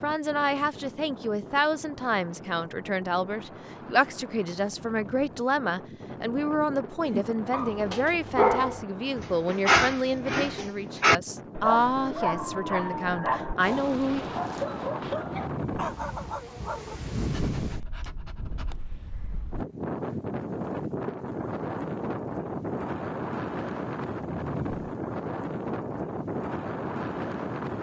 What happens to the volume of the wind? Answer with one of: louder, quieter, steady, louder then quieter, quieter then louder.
louder.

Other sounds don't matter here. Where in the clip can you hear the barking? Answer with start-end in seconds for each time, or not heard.
7.0-18.8.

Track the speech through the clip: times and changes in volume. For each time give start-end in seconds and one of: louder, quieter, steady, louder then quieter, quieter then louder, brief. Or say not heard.
0.0-14.2 steady.